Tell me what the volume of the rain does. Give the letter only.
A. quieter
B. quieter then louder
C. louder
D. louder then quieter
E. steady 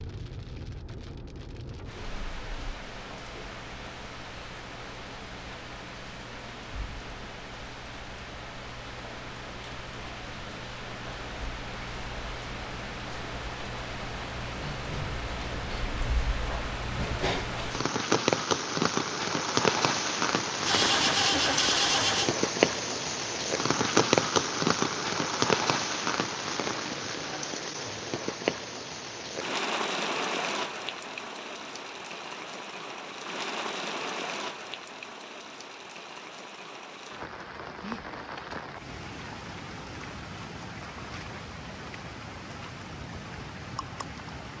D.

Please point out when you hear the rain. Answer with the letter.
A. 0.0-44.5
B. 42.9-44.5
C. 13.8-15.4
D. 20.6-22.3
A.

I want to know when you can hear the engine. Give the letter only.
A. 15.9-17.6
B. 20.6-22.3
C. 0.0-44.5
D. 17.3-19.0
B.